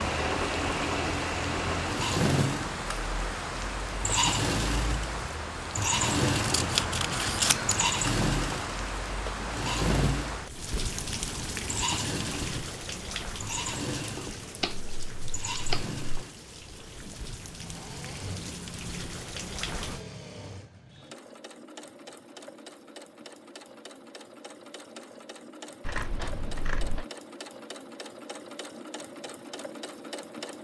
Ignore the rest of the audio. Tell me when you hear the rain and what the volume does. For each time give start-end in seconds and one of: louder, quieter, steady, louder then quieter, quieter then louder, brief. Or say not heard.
0.0-20.1 quieter.